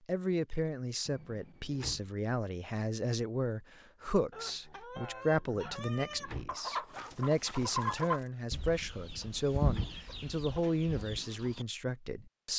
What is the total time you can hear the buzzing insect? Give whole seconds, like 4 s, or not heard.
not heard.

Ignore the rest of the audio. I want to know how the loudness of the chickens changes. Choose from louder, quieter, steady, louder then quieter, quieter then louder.
louder then quieter.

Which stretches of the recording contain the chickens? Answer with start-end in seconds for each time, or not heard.
4.3-11.7.